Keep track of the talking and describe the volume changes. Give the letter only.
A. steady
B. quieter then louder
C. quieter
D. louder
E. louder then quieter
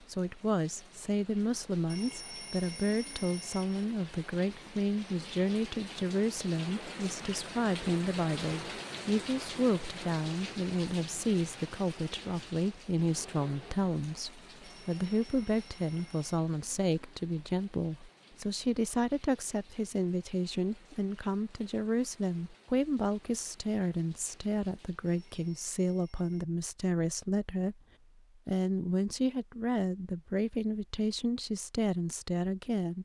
A.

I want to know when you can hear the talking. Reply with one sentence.
The talking can be heard from 0.1 to 27.8 s and from 28.4 to 32.9 s.